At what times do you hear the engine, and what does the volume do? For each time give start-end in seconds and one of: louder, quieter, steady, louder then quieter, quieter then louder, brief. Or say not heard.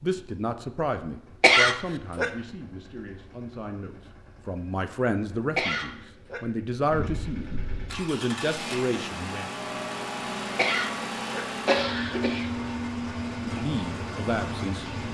0.0-15.1 louder.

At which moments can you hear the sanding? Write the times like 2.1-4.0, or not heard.
not heard.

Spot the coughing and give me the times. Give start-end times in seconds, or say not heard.
1.4-2.3, 5.5-6.5, 10.6-12.5.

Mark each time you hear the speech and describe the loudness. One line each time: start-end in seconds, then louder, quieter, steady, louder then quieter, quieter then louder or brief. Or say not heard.
0.0-9.5 quieter then louder
13.4-14.9 brief.